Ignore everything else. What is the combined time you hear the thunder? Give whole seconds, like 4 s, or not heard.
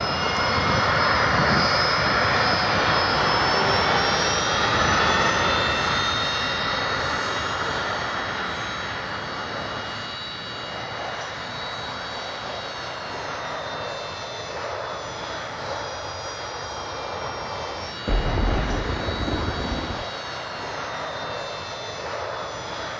2 s.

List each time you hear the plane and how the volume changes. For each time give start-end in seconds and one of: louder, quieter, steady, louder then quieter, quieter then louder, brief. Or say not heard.
0.0-22.9 quieter.